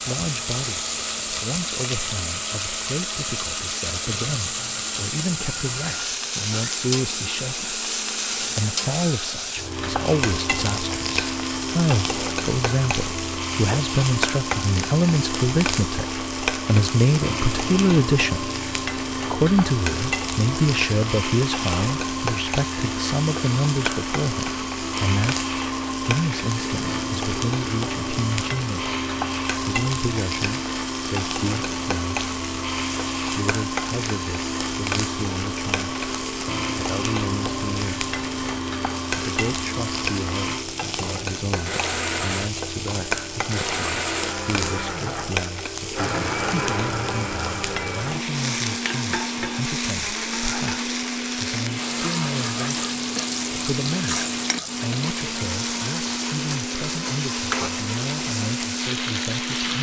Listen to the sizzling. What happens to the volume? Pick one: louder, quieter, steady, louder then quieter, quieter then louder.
steady.